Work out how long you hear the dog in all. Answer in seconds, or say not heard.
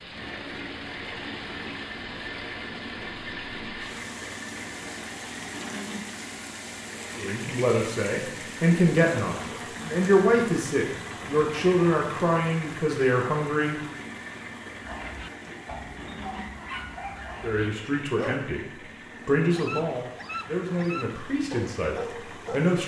7 s.